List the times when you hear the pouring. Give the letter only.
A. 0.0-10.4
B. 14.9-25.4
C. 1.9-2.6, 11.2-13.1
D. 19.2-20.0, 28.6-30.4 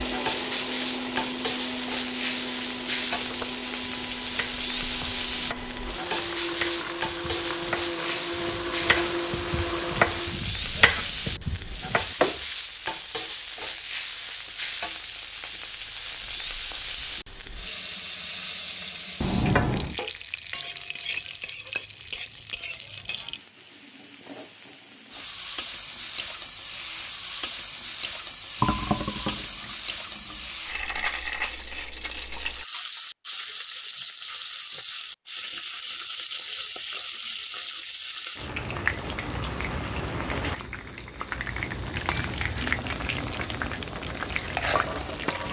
D.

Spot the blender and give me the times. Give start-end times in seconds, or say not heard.
0.0-10.4.